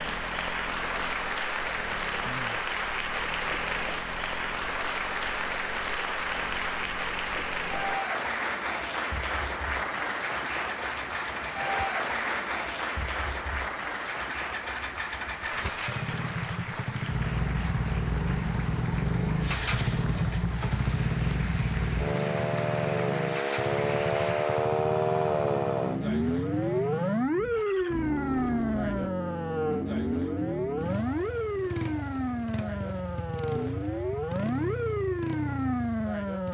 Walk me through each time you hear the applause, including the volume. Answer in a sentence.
You can hear the applause from 0.0 to 24.9 s, getting quieter.